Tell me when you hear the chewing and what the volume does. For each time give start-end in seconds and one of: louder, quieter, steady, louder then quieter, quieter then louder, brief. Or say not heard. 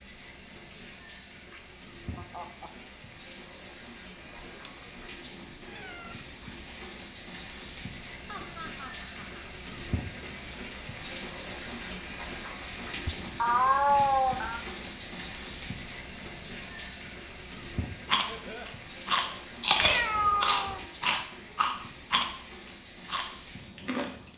18.1-24.3 quieter.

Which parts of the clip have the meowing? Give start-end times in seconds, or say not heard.
4.3-5.1, 5.7-6.2, 13.1-14.6, 19.8-20.9.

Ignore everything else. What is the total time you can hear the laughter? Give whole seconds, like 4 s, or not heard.
4 s.